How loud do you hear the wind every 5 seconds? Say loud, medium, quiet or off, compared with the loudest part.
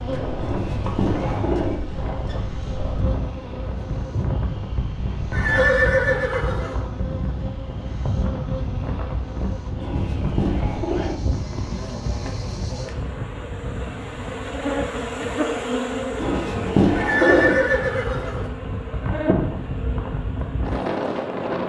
loud, loud, medium, medium, loud.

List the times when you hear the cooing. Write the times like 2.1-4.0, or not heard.
0.4-1.8, 9.8-11.2, 16.1-17.6.